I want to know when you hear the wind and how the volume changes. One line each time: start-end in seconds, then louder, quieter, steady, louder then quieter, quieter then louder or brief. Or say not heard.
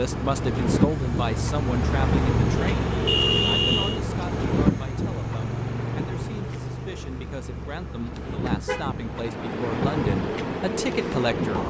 0.0-11.6 quieter then louder.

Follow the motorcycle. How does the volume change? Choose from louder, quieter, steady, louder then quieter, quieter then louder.
quieter.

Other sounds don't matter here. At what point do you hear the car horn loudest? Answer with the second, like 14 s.
3 s.